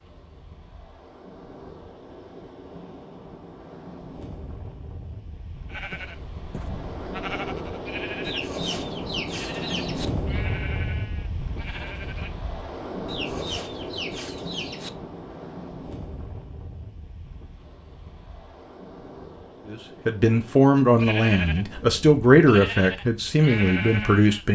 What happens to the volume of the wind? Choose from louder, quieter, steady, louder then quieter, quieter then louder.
louder then quieter.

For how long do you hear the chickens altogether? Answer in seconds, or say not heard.
4 s.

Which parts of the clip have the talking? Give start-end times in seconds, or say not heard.
19.6-24.5.